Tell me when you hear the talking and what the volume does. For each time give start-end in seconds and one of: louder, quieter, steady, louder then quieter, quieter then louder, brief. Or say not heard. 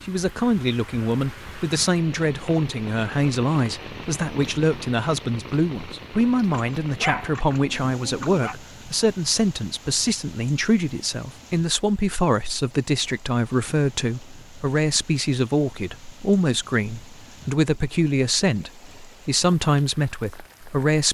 0.0-21.0 steady.